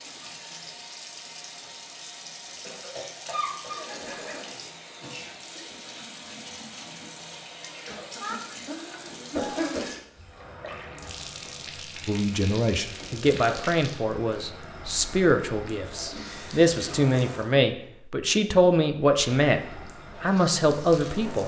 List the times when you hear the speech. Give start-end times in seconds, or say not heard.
12.1-19.6, 20.2-21.4.